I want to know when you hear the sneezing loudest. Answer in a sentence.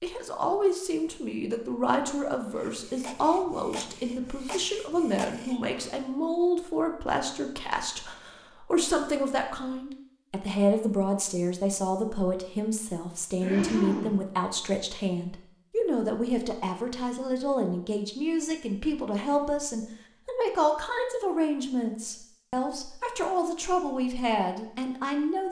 The volume of the sneezing peaks at 14 seconds.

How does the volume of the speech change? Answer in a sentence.
The loudness of the speech stays about the same.